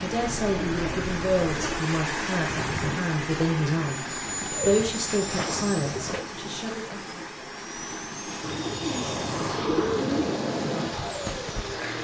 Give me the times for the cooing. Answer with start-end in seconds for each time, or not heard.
0.5-1.9, 4.2-6.2, 8.4-10.4.